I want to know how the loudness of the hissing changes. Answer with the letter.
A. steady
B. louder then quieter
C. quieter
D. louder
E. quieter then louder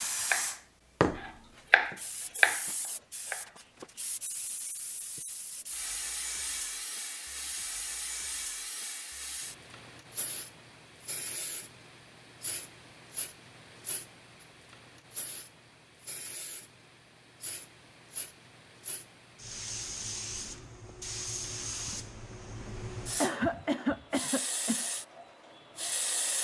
E.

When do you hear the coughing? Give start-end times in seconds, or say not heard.
23.1-24.9.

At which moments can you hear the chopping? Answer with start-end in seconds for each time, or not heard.
0.3-3.5.